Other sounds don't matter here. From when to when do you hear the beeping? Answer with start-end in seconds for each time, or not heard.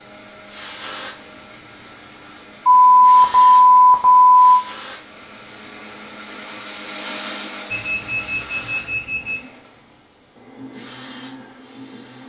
2.6-4.3, 7.7-9.4.